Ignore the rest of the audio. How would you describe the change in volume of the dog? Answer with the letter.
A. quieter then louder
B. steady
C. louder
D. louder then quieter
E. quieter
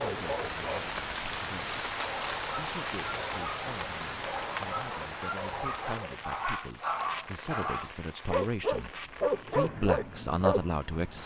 C.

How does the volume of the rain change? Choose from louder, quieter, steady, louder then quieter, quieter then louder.
quieter.